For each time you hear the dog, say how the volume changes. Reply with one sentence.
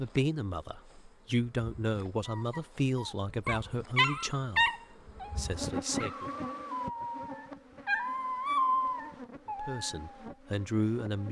You can hear the dog from 2.2 to 10.2 s, getting quieter then louder.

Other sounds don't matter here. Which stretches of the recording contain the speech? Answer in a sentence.
You can hear the speech from 0.0 to 4.7 s, from 5.3 to 6.3 s and from 9.6 to 11.2 s.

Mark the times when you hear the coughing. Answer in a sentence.
The coughing can't be heard in this clip.